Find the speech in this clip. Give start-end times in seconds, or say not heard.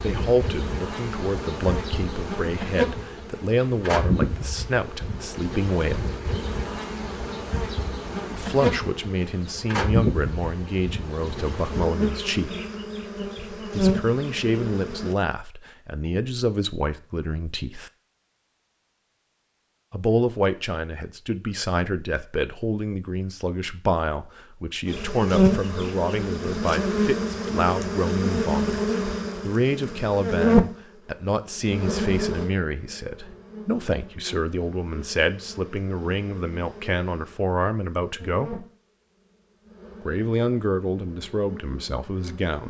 0.0-6.1, 8.3-12.6, 13.8-17.9, 19.9-38.6, 40.0-42.6.